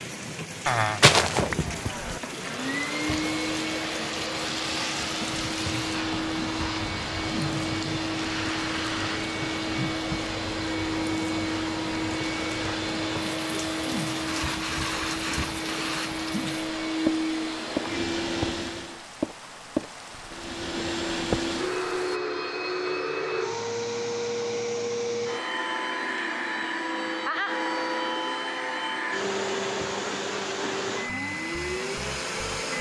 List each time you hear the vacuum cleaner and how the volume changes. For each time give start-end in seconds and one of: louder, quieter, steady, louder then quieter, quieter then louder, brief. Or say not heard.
1.5-19.1 steady
20.2-32.7 steady.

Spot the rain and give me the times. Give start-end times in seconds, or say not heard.
0.0-22.2.